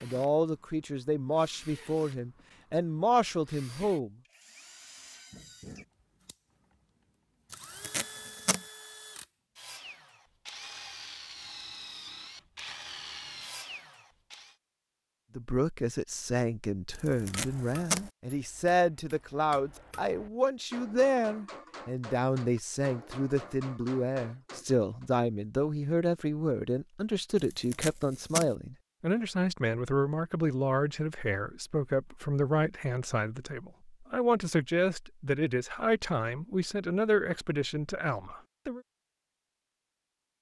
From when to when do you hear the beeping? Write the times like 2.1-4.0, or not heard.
not heard.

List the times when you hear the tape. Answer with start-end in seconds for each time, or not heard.
7.5-8.6, 16.9-18.1, 27.4-28.5.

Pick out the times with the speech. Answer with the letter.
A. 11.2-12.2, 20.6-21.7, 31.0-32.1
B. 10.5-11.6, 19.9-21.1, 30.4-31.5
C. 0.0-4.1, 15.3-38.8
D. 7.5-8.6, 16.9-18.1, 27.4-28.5
C.